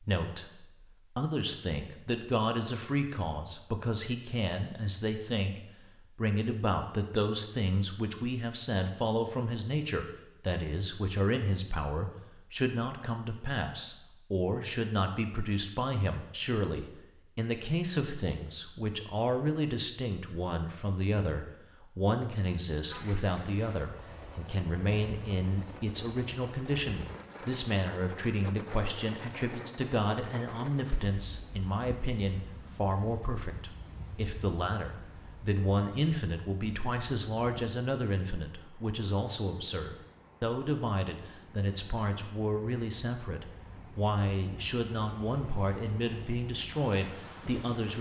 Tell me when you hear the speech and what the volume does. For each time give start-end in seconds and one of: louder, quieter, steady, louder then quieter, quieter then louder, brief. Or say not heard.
0.0-47.9 steady.